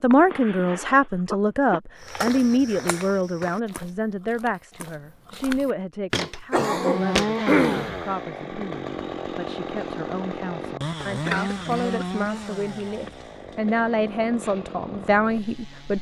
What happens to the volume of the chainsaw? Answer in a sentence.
The volume of the chainsaw goes down.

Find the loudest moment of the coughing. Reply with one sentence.
The loudest moment of the coughing is at 8 seconds.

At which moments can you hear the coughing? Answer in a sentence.
You can hear the coughing from 0.1 to 1.8 s, from 6.5 to 8.1 s and from 11.0 to 12.4 s.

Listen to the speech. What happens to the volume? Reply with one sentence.
The volume of the speech goes down, then up.